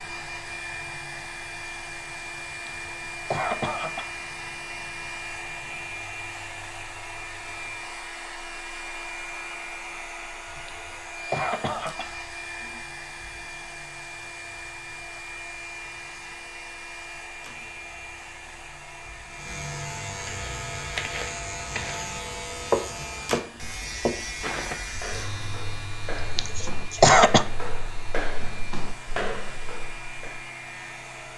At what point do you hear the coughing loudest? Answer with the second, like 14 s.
27 s.